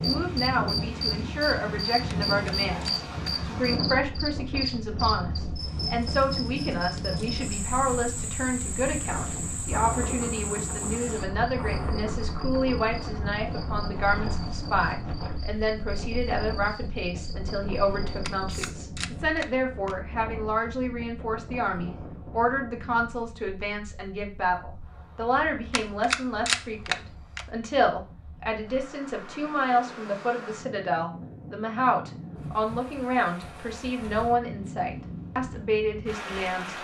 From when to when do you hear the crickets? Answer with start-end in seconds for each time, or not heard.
0.0-18.7.